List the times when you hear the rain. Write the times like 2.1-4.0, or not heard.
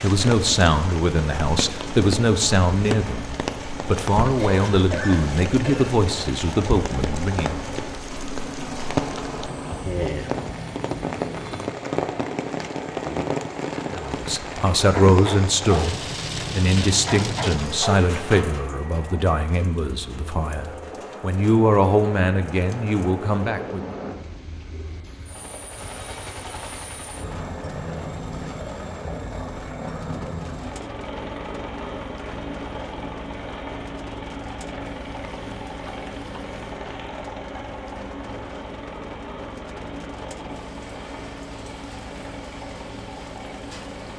0.0-44.1.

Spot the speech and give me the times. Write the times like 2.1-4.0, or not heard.
0.0-7.6, 13.9-23.9.